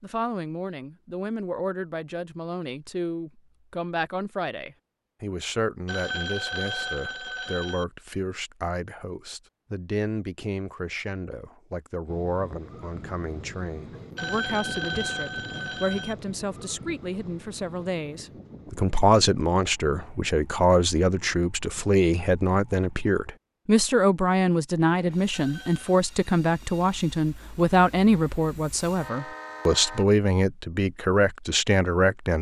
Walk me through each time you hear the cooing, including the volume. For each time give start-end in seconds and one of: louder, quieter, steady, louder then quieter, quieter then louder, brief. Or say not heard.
not heard.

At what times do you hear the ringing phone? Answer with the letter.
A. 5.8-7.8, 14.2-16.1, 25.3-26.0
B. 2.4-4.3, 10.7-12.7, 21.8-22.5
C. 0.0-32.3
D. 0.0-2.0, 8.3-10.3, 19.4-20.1
A.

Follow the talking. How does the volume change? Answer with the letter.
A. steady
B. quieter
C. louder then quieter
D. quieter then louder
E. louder
E.